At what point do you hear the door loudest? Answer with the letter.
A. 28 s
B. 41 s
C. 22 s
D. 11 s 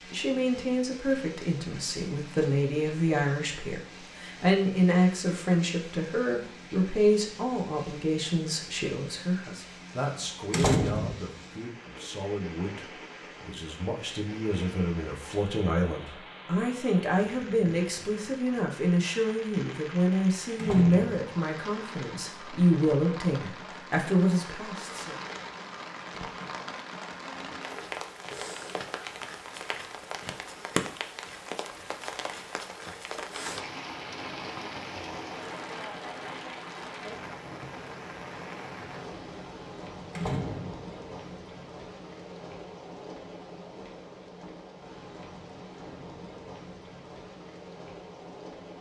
D.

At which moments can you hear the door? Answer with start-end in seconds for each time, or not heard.
10.5-11.2, 20.6-21.2, 40.1-40.9.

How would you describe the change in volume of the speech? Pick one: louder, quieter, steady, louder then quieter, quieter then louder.
quieter then louder.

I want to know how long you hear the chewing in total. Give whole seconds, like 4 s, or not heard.
not heard.